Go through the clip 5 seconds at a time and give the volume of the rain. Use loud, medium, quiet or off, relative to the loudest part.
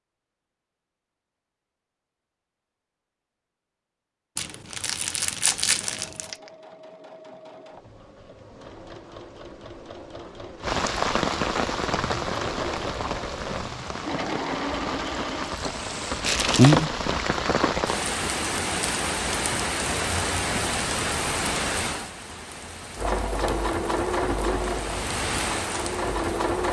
off, off, medium, loud, medium, medium.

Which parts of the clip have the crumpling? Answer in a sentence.
The crumpling can be heard from 4.3 to 6.3 s and from 16.2 to 16.9 s.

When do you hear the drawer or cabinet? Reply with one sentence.
You can't hear the drawer or cabinet here.